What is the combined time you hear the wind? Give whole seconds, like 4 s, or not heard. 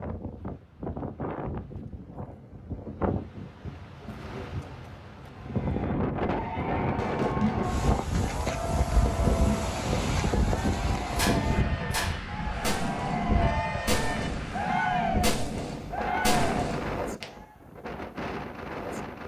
19 s.